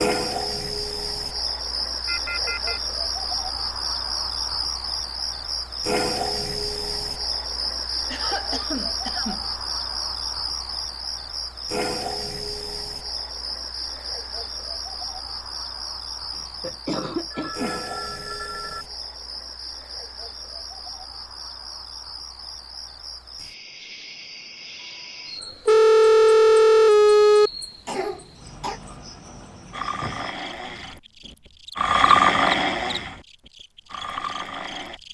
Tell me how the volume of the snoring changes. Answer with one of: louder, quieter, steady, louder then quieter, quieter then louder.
louder then quieter.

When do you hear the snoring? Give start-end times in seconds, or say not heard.
29.7-35.0.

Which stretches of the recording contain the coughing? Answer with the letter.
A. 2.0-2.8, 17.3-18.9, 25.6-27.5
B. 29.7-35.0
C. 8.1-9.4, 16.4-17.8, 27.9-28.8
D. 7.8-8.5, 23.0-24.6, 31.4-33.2
C.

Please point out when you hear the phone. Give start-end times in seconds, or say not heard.
2.0-2.8, 17.3-18.9, 25.6-27.5.